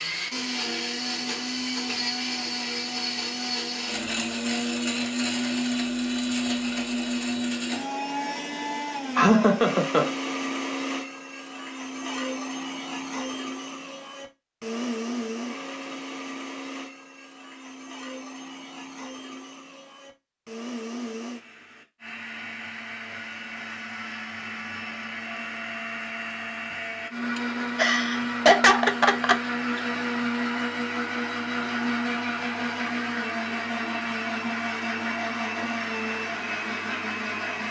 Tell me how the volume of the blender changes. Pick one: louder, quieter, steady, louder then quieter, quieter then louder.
quieter then louder.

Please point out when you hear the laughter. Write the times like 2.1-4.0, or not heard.
9.2-10.1, 27.4-29.8.